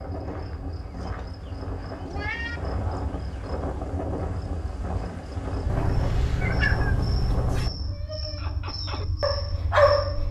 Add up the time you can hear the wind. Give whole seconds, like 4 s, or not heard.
8 s.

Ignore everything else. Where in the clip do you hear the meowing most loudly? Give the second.
7 s.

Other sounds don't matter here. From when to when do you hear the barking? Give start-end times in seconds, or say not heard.
7.8-10.2.